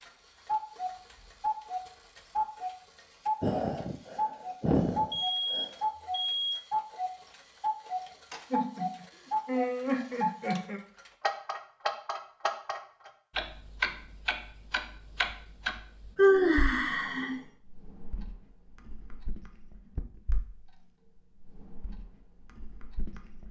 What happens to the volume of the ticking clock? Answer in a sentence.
The loudness of the ticking clock goes down.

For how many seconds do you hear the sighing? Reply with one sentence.
The sighing can be heard for 6 seconds in total.